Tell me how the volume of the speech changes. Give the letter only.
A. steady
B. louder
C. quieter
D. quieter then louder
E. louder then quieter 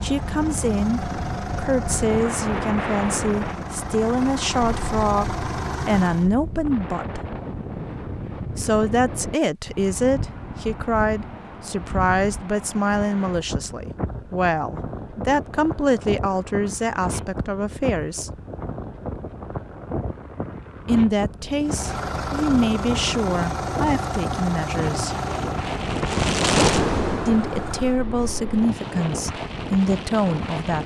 A.